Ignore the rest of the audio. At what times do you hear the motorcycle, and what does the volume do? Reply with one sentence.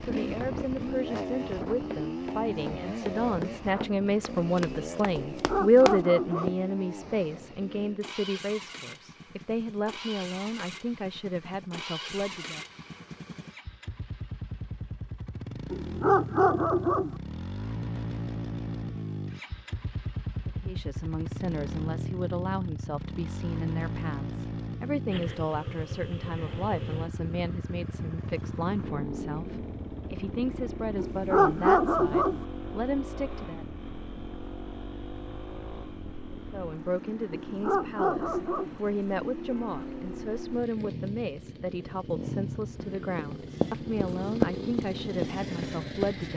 The motorcycle can be heard from 0.0 to 46.3 s, at a steady volume.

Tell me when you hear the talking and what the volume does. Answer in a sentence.
You can hear the talking from 0.0 to 12.7 s, getting louder then quieter; from 20.4 to 33.6 s, at a steady volume; and from 36.3 to 46.3 s, at a steady volume.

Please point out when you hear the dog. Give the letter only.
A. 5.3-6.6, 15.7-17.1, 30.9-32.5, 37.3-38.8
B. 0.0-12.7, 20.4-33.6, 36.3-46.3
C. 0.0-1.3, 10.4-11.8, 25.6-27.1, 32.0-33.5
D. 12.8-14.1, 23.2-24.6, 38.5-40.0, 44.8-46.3
A.